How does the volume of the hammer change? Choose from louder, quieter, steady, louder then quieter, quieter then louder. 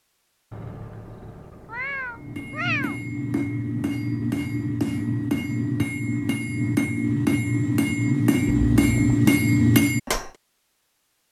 louder.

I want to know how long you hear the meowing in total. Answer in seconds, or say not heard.
3 s.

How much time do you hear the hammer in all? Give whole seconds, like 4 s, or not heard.
8 s.